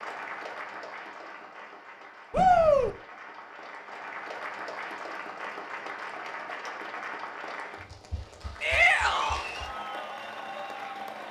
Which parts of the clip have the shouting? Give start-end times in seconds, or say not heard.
2.3-2.9, 8.6-9.4.